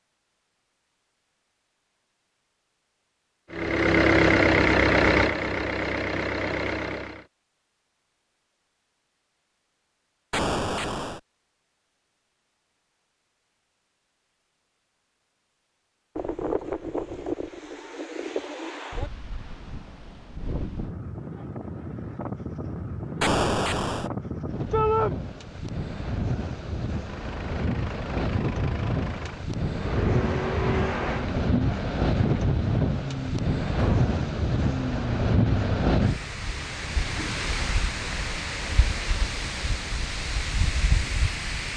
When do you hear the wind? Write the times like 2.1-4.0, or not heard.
16.1-41.7.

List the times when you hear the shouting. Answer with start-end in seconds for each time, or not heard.
24.7-25.1.